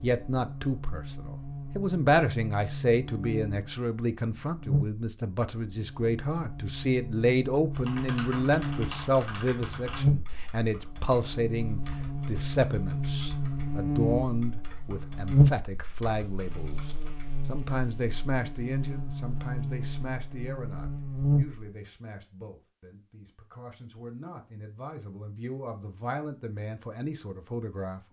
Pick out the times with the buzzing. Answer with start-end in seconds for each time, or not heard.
0.0-21.6.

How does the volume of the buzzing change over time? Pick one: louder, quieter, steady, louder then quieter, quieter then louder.
louder then quieter.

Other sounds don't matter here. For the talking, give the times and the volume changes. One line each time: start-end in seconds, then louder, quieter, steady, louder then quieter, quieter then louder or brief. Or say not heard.
0.0-28.0 quieter.